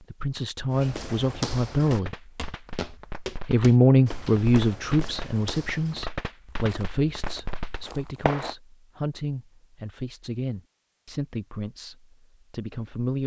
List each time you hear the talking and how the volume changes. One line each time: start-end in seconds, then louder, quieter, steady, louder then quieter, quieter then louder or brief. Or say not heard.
0.0-2.1 brief
3.5-13.2 quieter.